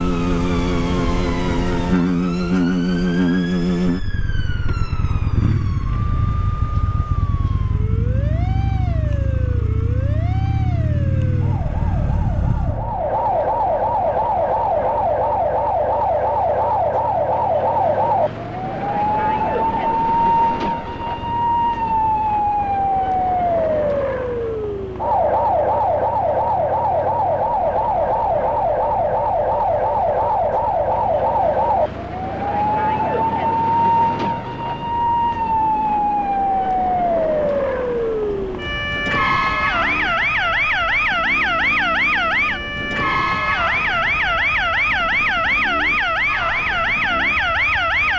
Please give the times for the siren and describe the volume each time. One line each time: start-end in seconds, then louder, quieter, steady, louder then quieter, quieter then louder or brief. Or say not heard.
0.0-48.1 louder.